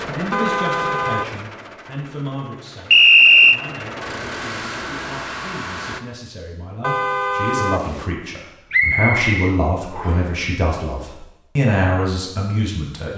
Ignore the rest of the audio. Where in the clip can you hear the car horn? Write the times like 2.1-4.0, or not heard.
0.3-1.4, 6.8-8.1.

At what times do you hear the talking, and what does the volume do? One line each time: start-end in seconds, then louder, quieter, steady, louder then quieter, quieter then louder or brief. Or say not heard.
0.1-13.1 quieter then louder.